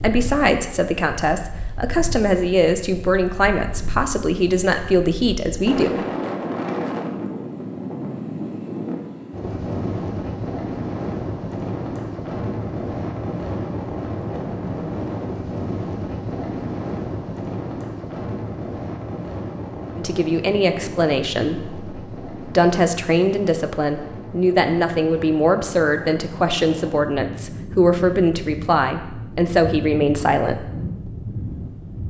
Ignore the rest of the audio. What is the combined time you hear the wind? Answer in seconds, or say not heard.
32 s.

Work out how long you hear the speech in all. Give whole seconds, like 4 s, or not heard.
17 s.